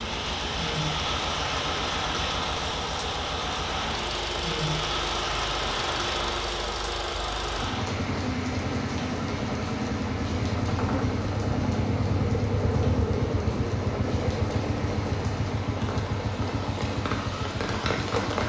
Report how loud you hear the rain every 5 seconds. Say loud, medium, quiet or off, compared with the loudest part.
loud, loud, medium, loud.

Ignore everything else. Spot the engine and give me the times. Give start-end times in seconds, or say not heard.
0.0-18.4.